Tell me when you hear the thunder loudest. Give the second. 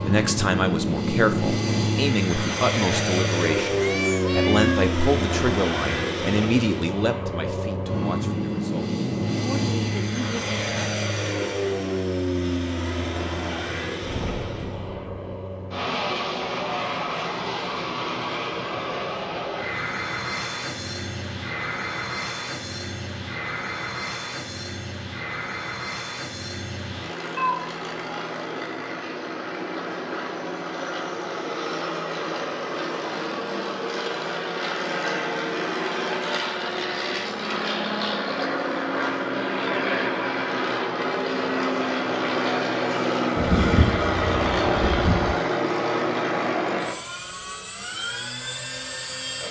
44 s.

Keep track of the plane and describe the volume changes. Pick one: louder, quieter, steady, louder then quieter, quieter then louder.
quieter then louder.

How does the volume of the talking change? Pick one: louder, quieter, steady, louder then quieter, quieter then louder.
quieter.